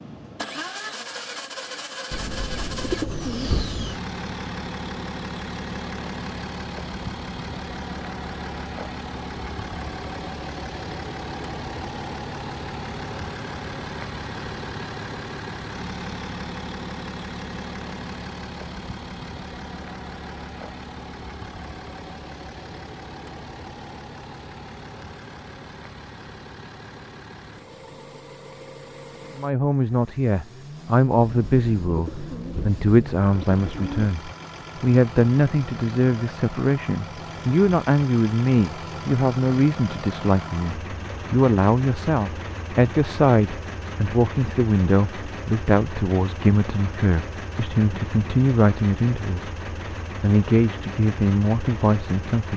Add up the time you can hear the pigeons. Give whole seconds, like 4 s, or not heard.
5 s.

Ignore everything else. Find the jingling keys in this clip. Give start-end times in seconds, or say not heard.
not heard.